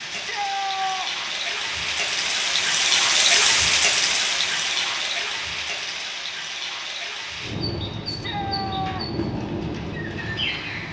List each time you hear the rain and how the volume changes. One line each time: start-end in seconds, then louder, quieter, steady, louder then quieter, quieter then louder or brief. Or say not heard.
0.0-10.8 louder then quieter.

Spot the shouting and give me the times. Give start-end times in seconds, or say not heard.
0.1-1.3, 8.1-9.2.